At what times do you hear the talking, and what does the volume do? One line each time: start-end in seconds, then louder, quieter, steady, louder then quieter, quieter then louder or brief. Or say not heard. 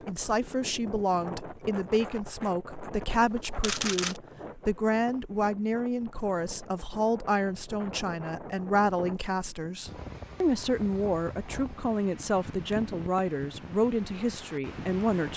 0.1-15.3 steady.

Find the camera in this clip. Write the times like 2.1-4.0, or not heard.
3.1-4.2.